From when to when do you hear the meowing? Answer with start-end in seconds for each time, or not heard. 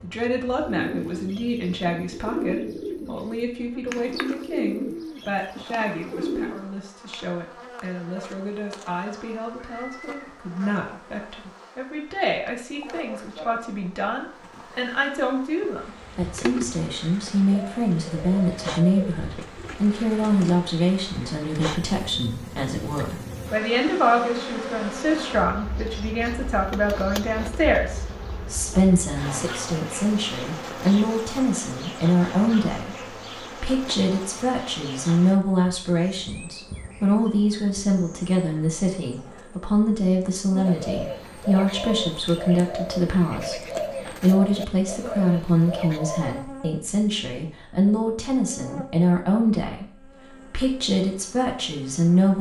9.6-10.4.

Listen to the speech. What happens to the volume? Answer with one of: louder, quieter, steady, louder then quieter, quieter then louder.
louder.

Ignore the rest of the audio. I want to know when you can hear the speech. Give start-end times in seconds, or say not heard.
0.0-52.3.